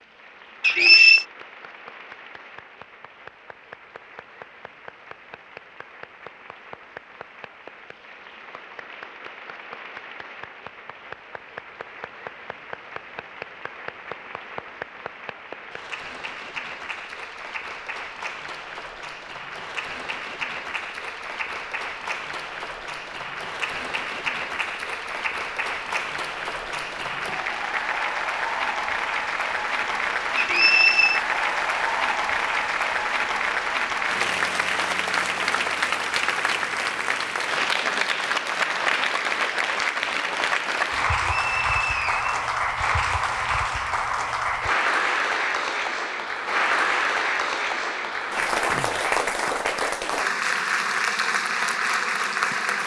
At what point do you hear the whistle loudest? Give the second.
1 s.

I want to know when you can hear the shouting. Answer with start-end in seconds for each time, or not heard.
not heard.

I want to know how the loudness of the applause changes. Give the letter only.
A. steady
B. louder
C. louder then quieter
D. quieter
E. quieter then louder
B.